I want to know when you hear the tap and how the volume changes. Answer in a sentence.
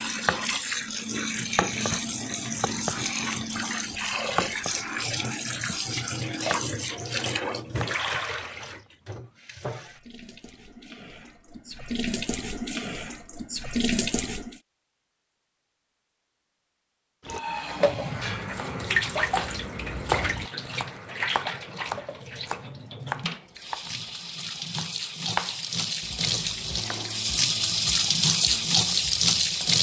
The tap can be heard from 0.0 to 14.6 s, getting quieter then louder; and from 17.2 to 29.7 s, getting quieter then louder.